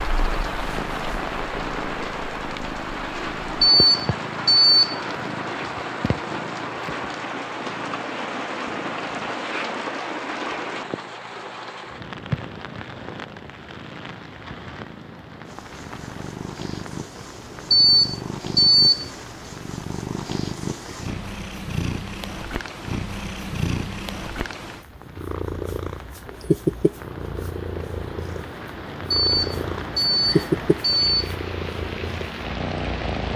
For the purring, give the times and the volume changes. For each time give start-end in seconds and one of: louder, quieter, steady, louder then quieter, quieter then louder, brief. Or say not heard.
0.0-33.3 louder.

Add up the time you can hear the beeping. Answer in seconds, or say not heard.
5 s.